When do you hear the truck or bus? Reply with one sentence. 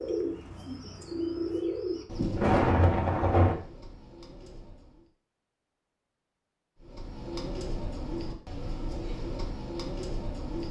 You can't hear the truck or bus here.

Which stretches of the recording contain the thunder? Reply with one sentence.
You can hear the thunder from 2.1 to 3.5 s.